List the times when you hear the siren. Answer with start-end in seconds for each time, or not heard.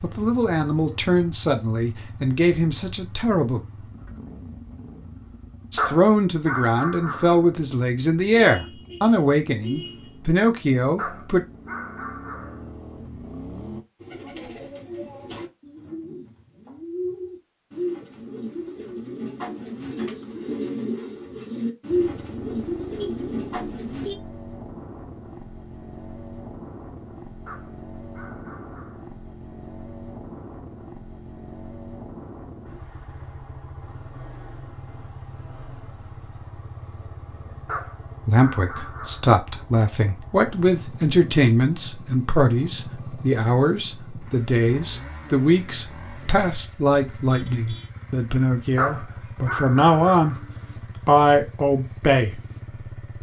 not heard.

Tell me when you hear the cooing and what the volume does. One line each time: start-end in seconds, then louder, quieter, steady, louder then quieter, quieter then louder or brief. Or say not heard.
14.0-24.1 louder.